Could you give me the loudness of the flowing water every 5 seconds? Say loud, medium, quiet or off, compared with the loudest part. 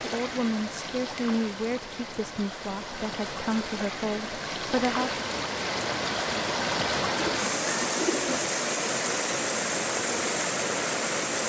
medium, loud, loud.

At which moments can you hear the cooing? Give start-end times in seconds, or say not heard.
7.0-8.4.